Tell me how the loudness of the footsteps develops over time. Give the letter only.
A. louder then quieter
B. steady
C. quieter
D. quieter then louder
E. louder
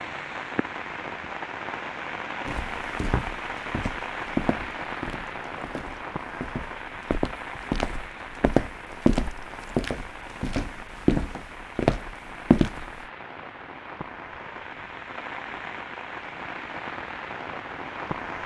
D.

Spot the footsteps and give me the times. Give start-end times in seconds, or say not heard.
2.5-13.0.